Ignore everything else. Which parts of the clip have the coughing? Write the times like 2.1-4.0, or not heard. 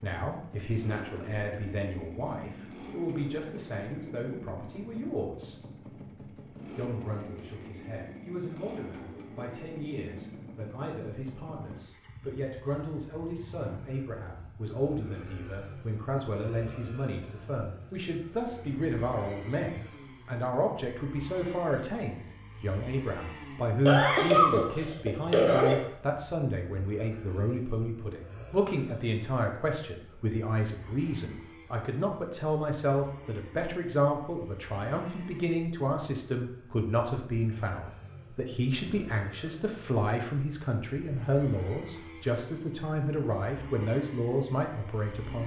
23.9-25.9.